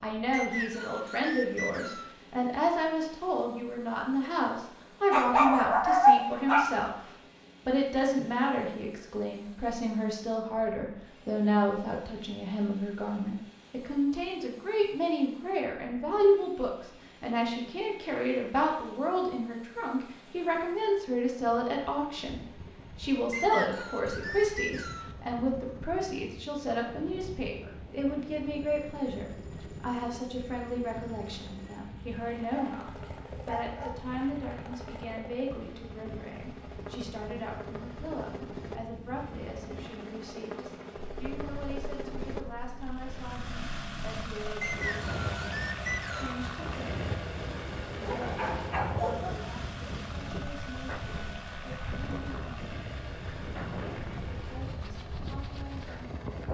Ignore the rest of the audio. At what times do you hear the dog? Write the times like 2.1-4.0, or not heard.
5.1-6.8, 32.5-34.1, 48.0-49.5.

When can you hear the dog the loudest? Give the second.
6 s.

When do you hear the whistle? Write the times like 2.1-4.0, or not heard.
0.3-2.1, 23.3-25.1, 44.6-46.4.